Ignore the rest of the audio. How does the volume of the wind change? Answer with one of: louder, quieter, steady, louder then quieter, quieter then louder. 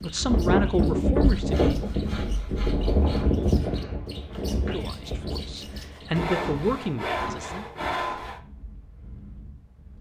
quieter.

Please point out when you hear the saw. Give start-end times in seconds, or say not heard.
1.4-3.2, 6.1-8.4.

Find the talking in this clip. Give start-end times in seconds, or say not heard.
0.0-1.8, 4.6-7.7.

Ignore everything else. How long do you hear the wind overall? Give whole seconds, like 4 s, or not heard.
10 s.